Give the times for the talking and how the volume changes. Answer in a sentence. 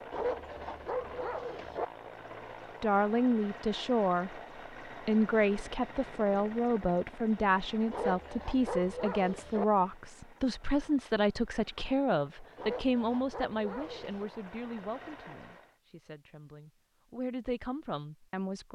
You can hear the talking briefly from 2.8 to 4.3 s; and from 4.9 to 18.7 s, getting quieter.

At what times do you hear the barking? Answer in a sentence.
You can hear the barking from 0.1 to 1.9 s, from 7.9 to 9.7 s and from 12.6 to 14.3 s.